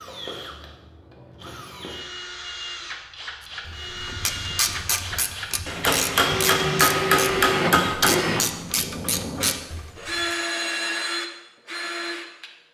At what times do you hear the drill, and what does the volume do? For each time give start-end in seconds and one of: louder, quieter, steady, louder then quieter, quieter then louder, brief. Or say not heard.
0.0-12.5 louder.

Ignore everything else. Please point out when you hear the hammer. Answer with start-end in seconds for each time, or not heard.
5.7-8.2.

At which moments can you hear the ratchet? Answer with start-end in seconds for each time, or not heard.
3.6-10.3.